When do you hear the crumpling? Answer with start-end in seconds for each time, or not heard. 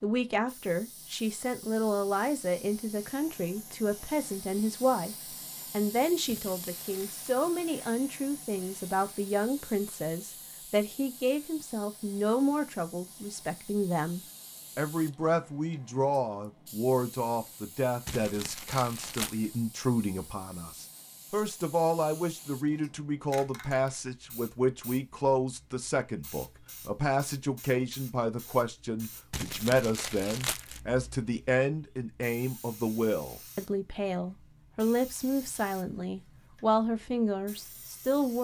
6.2-7.2, 18.1-19.4, 29.3-30.8.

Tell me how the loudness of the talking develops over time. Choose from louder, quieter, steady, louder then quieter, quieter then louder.
steady.